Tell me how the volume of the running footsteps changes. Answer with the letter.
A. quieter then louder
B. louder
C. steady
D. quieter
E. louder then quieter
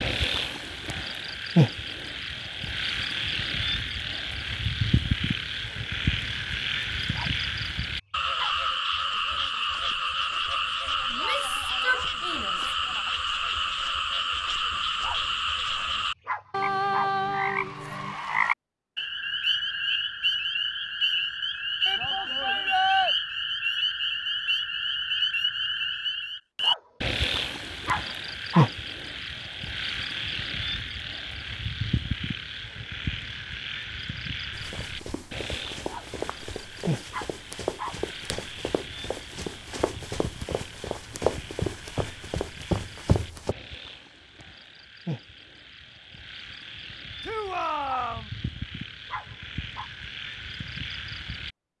B.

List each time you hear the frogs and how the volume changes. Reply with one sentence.
The frogs can be heard from 0.0 to 51.5 s, getting quieter.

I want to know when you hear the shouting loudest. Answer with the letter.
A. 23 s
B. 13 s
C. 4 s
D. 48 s
A.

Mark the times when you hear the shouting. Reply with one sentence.
You can hear the shouting from 11.1 to 13.1 s, from 21.9 to 23.1 s and from 47.2 to 48.3 s.